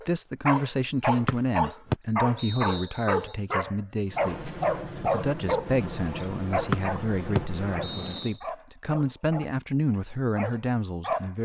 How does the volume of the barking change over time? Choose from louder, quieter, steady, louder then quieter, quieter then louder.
quieter.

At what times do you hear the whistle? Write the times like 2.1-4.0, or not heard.
1.2-3.4, 6.7-8.3.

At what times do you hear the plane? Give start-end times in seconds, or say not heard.
4.0-8.4.